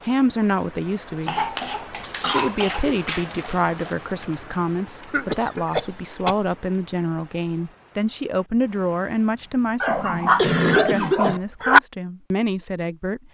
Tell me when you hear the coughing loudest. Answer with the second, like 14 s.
11 s.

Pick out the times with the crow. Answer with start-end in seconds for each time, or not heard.
not heard.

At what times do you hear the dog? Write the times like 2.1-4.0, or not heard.
1.6-4.0, 9.8-11.8.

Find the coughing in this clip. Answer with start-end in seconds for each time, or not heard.
1.2-2.8, 5.0-6.5, 9.9-11.4.